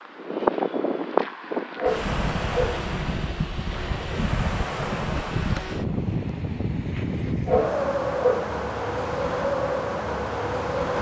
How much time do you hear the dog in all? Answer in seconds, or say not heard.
2 s.